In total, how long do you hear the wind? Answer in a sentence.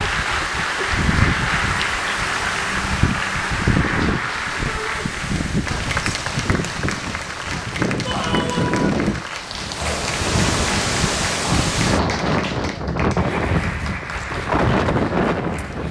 You can hear the wind for 16 seconds altogether.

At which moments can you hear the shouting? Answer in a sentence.
You can hear the shouting from 4.7 to 5.1 s and from 8.1 to 8.8 s.